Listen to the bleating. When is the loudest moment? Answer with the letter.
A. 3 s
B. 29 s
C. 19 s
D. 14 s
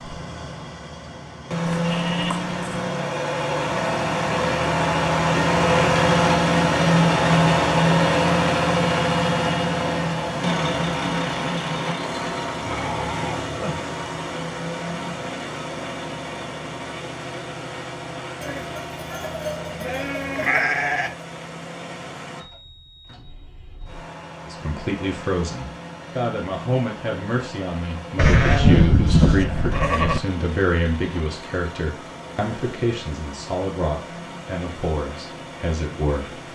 B.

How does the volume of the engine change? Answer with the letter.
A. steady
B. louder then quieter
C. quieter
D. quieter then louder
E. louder
C.